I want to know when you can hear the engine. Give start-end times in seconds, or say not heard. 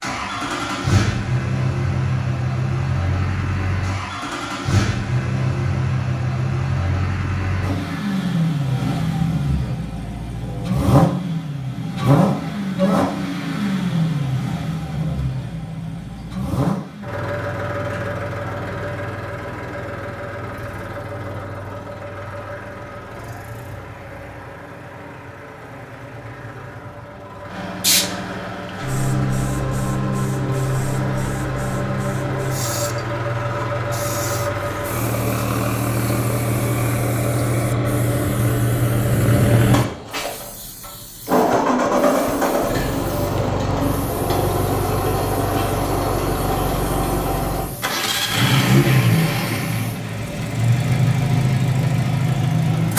0.0-52.9.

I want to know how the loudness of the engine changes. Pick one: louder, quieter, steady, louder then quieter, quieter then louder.
quieter then louder.